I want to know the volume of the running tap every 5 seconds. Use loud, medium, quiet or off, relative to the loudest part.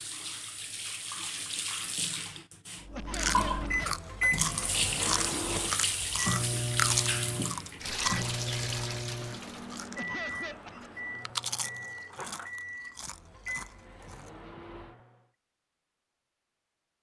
loud, loud, off, off.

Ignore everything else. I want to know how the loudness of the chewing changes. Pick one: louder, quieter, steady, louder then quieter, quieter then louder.
quieter.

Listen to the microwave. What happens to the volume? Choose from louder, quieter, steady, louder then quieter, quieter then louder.
quieter.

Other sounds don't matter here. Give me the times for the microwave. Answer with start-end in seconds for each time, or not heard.
2.9-15.2.